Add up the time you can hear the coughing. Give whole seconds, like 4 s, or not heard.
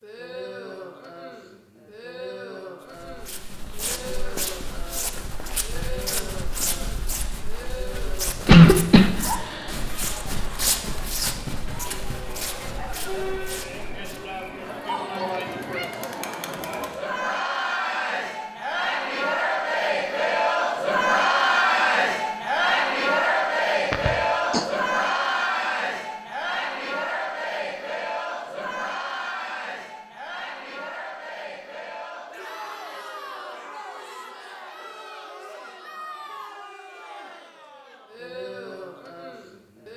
2 s.